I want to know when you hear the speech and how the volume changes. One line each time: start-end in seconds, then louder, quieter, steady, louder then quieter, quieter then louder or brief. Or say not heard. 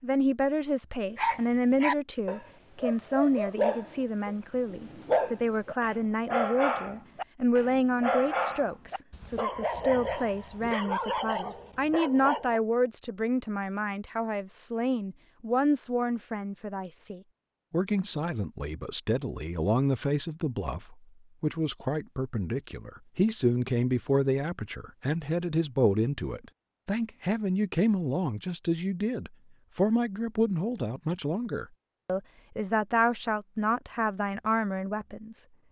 0.0-35.5 steady.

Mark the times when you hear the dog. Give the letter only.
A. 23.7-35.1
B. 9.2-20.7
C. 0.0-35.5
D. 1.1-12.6
D.